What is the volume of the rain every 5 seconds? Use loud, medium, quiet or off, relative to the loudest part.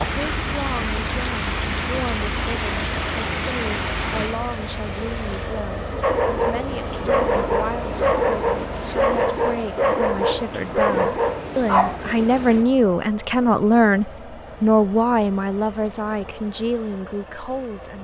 loud, medium, medium, off.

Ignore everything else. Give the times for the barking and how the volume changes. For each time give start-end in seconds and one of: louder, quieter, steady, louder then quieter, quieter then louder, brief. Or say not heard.
6.0-12.1 steady.